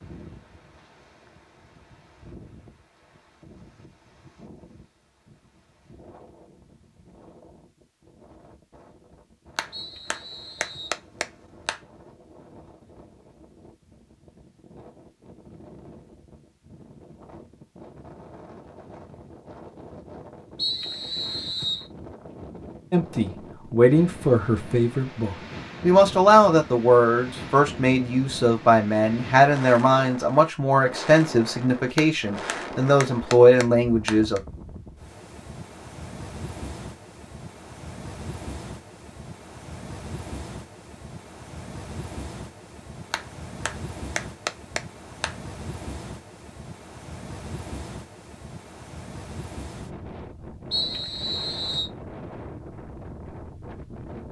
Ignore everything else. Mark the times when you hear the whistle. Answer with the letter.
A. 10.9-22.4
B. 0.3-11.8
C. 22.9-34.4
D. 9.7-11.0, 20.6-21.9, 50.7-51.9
D.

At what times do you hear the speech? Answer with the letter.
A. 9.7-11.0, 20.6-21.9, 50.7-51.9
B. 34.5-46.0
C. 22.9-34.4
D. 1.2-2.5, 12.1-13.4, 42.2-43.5
C.